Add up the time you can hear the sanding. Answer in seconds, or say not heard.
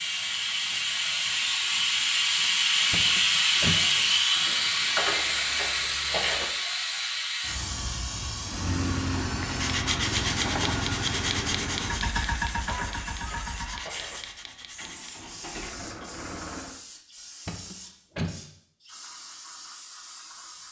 6 s.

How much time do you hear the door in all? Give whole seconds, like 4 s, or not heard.
2 s.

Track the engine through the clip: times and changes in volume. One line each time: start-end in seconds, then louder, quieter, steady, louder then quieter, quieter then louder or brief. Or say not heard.
8.4-16.8 quieter.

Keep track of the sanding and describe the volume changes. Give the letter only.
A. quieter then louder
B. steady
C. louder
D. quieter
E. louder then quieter
D.